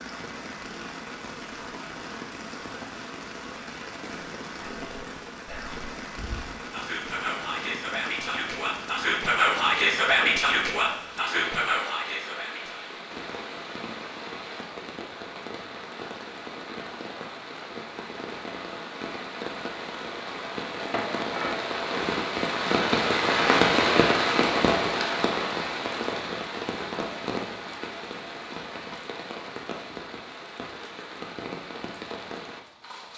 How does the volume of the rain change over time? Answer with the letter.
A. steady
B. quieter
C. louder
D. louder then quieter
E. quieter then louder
D.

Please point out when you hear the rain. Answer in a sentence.
The rain can be heard from 0.0 to 33.1 s.